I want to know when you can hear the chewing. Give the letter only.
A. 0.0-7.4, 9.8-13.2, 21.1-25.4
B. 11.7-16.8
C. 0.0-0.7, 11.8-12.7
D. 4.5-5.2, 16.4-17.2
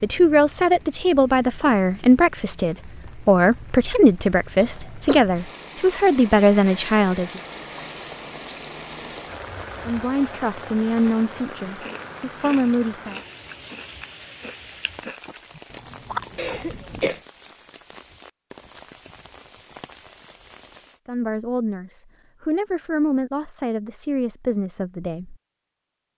B.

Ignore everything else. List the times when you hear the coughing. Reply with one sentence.
The coughing can be heard from 4.5 to 5.2 s and from 16.4 to 17.2 s.